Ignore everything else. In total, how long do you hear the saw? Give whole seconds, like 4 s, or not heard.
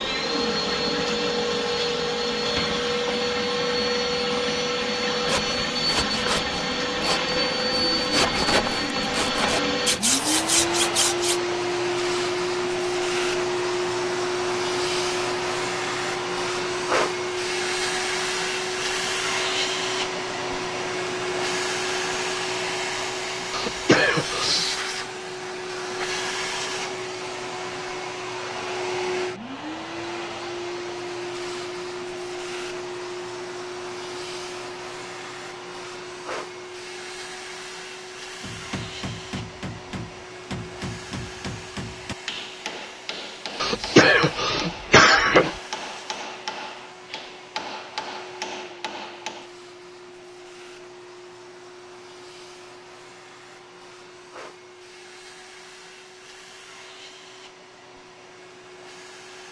6 s.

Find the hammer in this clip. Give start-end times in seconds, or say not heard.
38.4-49.5.